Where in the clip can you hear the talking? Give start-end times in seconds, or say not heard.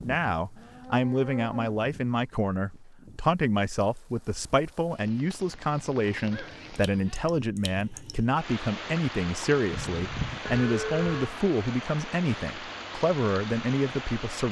0.0-14.4.